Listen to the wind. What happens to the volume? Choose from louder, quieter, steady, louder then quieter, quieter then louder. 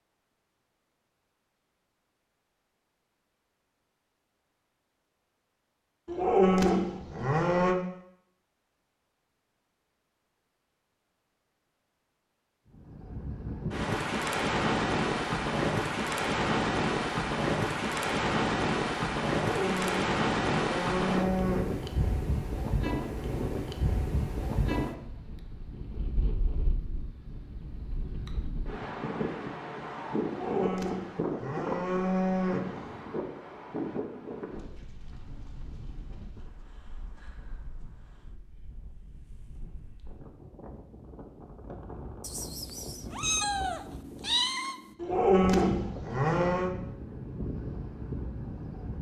quieter then louder.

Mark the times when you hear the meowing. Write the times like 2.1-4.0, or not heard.
42.2-45.0.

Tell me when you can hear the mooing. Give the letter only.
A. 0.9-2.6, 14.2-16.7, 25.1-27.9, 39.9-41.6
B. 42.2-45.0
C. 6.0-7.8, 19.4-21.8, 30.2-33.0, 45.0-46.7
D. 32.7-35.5
C.